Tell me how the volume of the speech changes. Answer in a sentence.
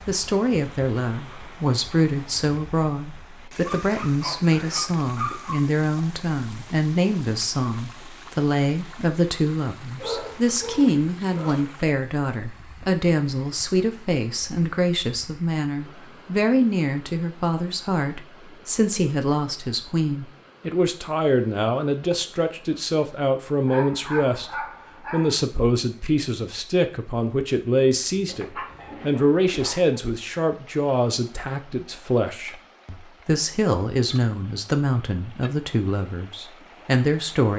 The loudness of the speech stays about the same.